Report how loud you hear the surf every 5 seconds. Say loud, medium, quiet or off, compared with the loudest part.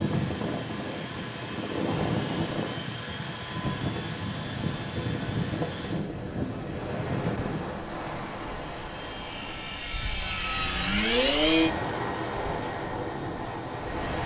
loud, loud, medium.